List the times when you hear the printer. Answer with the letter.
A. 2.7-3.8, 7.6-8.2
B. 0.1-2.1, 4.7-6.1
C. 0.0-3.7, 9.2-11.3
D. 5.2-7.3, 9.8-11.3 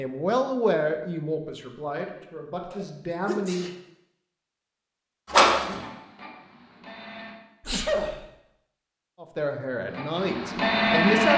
D.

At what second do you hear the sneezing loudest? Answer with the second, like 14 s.
8 s.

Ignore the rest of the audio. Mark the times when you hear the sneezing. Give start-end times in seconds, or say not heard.
2.7-3.8, 7.6-8.2.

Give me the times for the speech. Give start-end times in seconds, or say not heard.
0.0-3.7, 9.2-11.3.